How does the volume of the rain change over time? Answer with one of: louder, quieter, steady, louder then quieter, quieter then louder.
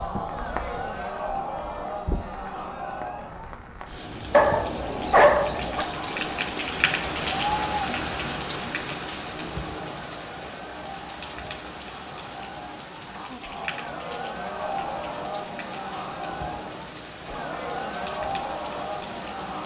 louder then quieter.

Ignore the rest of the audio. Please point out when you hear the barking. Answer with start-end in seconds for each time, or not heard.
4.3-5.8.